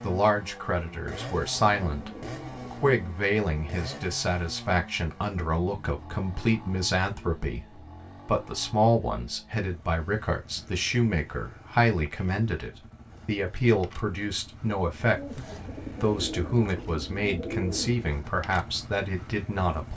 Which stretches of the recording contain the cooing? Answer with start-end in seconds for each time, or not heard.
1.2-2.9, 15.2-18.1.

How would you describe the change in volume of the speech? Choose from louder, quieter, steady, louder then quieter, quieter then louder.
steady.